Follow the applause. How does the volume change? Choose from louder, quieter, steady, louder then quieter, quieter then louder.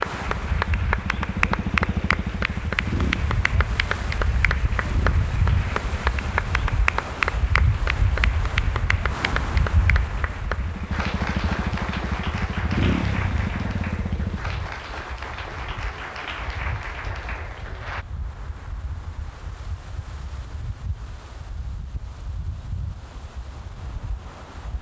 quieter.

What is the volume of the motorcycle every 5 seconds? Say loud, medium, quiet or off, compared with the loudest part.
loud, medium, loud, off, off.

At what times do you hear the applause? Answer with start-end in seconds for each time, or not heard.
0.0-18.1.